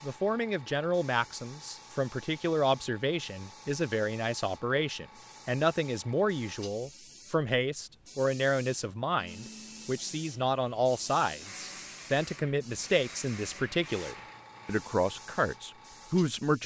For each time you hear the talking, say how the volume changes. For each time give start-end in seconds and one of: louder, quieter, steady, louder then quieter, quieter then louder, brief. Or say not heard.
0.0-16.6 steady.